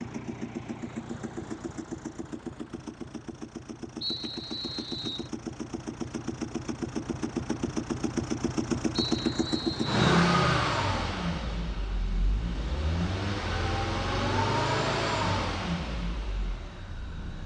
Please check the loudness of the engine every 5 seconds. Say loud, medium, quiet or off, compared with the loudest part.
medium, loud, loud, medium.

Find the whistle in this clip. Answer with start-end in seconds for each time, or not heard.
4.0-5.3, 8.9-10.0.